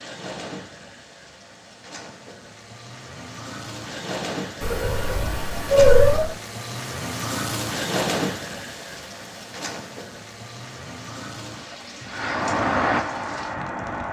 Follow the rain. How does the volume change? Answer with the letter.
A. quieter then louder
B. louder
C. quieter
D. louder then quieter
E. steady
D.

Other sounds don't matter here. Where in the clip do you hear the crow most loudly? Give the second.
13 s.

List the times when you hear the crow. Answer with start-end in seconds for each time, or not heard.
12.1-14.0.